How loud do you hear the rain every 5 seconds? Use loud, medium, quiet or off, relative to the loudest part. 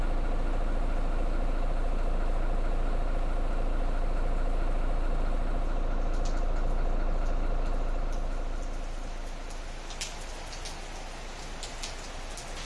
quiet, medium, loud.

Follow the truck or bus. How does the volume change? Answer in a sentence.
The volume of the truck or bus goes down.